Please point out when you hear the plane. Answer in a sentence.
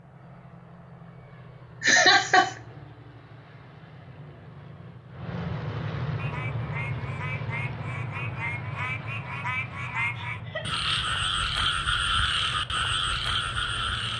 You can hear the plane from 0.0 to 14.1 s.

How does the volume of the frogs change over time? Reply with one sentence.
The loudness of the frogs goes up.